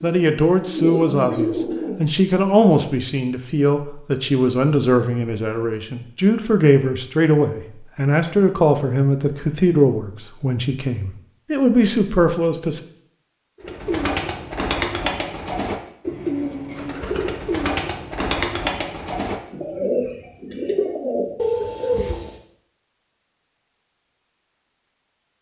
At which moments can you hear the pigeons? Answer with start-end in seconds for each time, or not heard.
0.0-2.1, 13.6-22.4.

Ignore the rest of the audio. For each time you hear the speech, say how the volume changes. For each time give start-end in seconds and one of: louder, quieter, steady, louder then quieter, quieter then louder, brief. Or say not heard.
0.0-12.8 steady.